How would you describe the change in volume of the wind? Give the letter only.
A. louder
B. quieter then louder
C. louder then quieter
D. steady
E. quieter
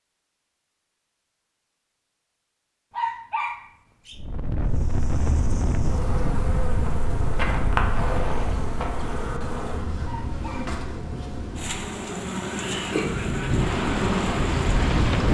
B.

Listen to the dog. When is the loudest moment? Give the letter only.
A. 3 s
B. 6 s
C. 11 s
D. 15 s
A.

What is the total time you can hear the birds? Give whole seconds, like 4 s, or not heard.
not heard.